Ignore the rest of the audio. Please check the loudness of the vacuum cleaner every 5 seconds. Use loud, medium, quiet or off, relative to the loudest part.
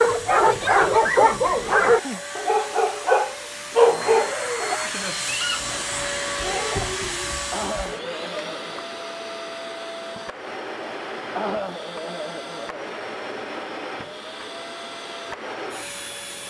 loud, loud, medium, medium.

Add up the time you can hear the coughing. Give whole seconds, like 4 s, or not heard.
5 s.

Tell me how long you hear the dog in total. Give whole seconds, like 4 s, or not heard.
5 s.